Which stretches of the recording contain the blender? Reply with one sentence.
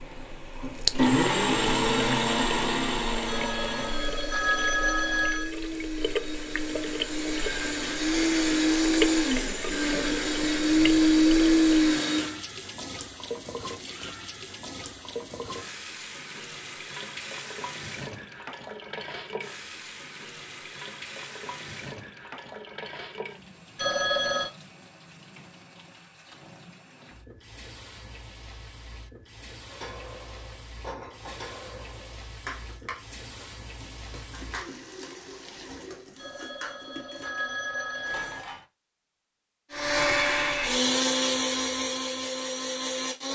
You can hear the blender from 0.0 to 12.4 s and from 39.7 to 43.2 s.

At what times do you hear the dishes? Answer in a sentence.
The dishes can be heard from 29.6 to 38.6 s.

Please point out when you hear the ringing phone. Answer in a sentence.
You can hear the ringing phone from 3.2 to 5.5 s, from 23.8 to 24.5 s and from 36.1 to 38.5 s.